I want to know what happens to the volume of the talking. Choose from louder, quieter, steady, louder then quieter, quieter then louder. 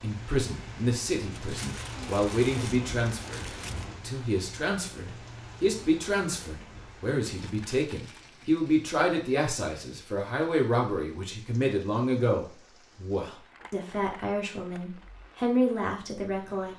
steady.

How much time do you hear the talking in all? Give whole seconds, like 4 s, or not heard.
17 s.